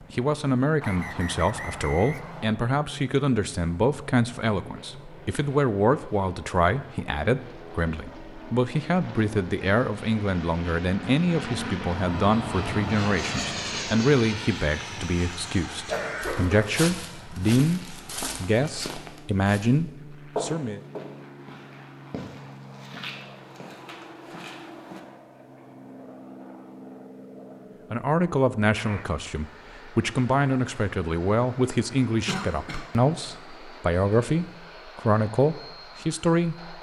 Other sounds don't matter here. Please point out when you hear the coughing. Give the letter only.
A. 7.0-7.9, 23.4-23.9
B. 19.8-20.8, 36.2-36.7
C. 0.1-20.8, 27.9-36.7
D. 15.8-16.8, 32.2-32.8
D.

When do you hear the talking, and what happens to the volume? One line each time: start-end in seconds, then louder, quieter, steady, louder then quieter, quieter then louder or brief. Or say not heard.
0.1-20.8 steady
27.9-36.7 steady.